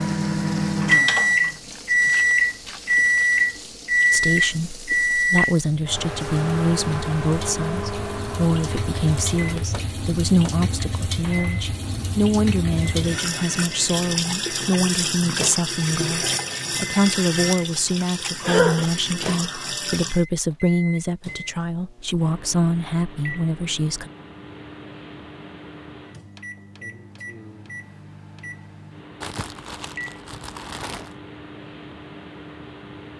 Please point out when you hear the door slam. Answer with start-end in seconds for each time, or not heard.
not heard.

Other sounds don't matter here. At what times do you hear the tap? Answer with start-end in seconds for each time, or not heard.
0.0-20.2.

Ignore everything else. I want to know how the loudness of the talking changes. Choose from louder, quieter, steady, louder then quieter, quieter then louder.
steady.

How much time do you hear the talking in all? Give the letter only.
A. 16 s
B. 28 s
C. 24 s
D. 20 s
D.